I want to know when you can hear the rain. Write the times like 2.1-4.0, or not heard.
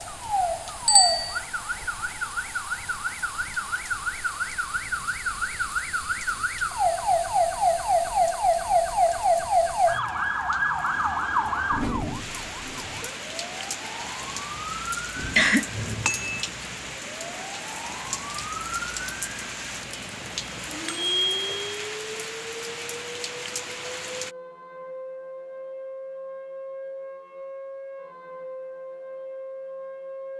0.0-24.4.